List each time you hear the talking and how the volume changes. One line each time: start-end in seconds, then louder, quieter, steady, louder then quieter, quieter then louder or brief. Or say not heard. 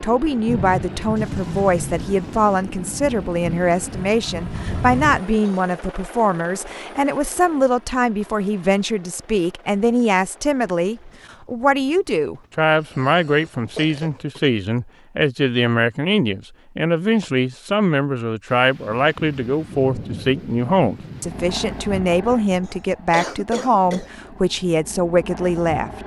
0.0-26.0 steady.